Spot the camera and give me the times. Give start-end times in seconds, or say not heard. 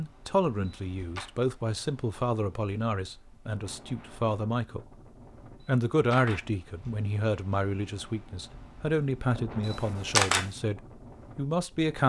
0.7-1.2, 5.6-6.4, 9.7-10.4.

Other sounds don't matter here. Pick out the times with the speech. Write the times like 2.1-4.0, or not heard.
0.0-4.9, 5.7-12.0.